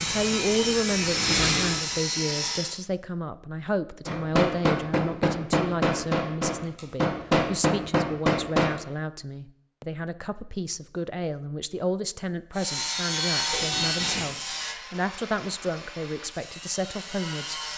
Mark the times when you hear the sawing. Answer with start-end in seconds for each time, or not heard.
0.0-2.8, 12.6-17.7.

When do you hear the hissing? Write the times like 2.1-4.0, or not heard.
0.0-2.0.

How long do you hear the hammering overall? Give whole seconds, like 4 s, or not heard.
5 s.